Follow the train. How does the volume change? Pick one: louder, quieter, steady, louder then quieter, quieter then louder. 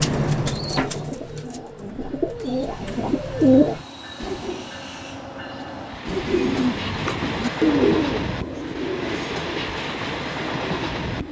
louder.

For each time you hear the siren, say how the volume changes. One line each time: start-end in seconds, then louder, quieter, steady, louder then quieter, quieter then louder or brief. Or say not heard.
not heard.